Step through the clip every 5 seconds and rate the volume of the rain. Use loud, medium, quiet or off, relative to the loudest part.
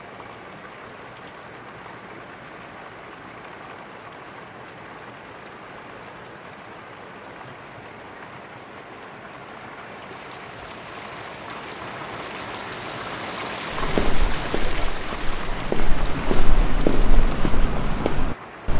medium, medium, loud, loud.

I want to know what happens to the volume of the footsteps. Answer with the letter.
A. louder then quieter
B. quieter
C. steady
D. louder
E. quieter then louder
D.